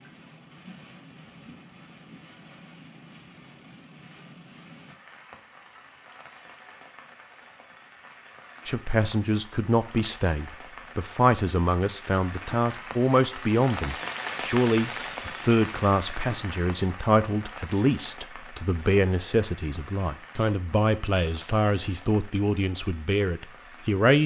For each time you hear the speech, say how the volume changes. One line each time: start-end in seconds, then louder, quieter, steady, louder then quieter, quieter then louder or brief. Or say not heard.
8.7-24.2 steady.